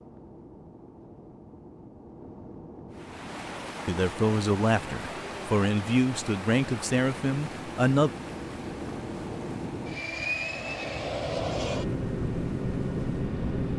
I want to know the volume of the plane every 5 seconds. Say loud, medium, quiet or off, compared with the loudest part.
quiet, medium, loud.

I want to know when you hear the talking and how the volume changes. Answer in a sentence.
The talking can be heard from 3.9 to 8.1 s, at a steady volume.